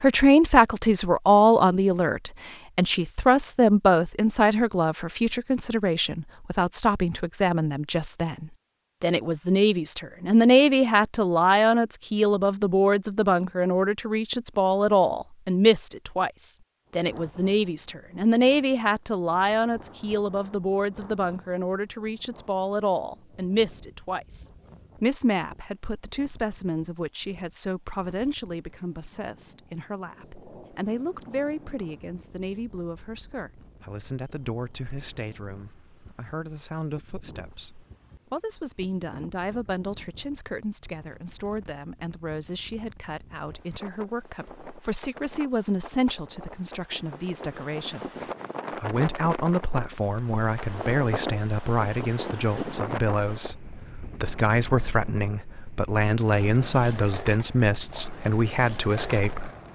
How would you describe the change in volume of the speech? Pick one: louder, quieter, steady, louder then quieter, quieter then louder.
quieter then louder.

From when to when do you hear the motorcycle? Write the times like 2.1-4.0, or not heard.
not heard.